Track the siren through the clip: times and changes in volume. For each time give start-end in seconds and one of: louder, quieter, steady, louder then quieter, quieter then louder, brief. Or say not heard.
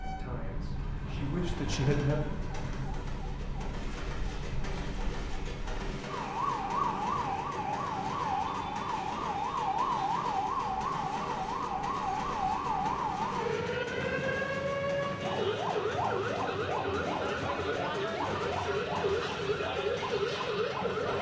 0.0-21.1 louder.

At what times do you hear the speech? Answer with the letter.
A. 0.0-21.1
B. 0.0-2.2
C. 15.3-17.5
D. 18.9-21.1
B.